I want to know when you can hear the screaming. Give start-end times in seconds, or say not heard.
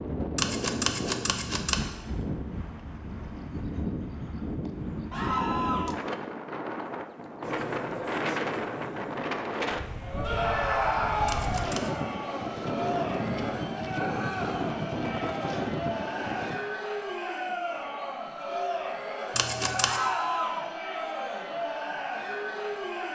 5.1-6.0, 10.2-11.6, 19.8-20.7.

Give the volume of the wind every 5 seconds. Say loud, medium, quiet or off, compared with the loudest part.
loud, loud, loud, loud, off.